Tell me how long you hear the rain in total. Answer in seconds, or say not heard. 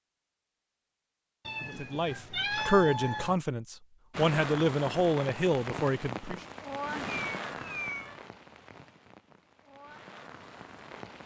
7 s.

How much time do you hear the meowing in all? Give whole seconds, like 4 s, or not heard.
3 s.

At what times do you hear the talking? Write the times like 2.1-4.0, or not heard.
1.6-6.4.